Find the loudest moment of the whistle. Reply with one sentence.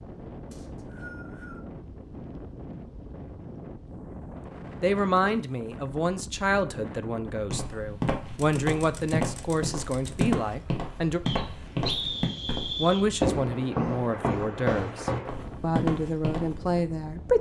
The loudest moment of the whistle is at 12 seconds.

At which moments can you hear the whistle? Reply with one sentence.
You can hear the whistle from 0.5 to 1.6 s and from 11.2 to 13.1 s.